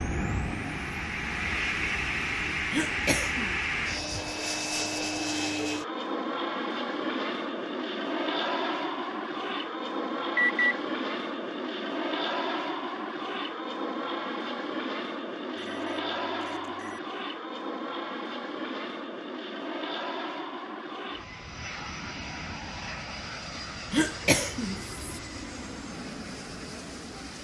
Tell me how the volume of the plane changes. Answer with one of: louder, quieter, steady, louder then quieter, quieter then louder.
quieter.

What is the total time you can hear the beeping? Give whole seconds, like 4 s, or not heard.
2 s.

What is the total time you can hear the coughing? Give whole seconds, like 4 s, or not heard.
2 s.